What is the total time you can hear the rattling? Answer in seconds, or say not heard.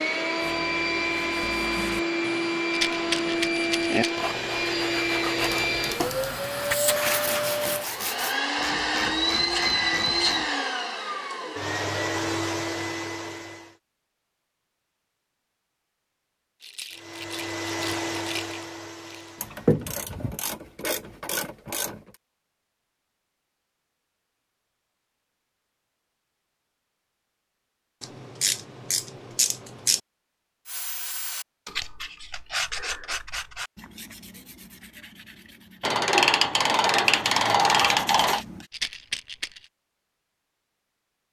5 s.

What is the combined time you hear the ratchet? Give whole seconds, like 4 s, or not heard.
10 s.